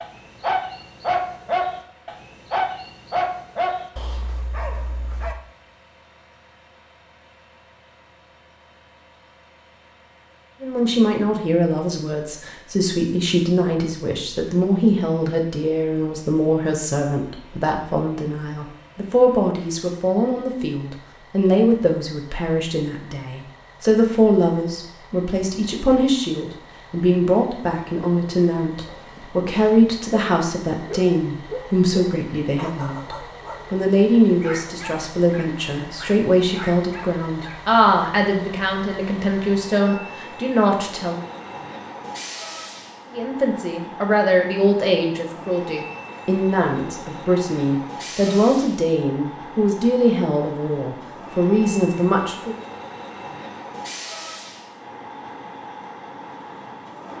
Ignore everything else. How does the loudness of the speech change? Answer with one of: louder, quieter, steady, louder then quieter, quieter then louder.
steady.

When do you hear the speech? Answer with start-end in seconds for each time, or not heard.
10.6-41.2, 43.1-52.5.